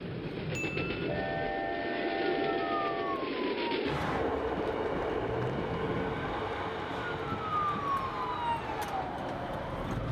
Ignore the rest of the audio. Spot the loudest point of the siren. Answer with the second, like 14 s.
8 s.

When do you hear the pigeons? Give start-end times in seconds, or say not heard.
not heard.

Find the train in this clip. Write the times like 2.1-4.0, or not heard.
0.0-10.0.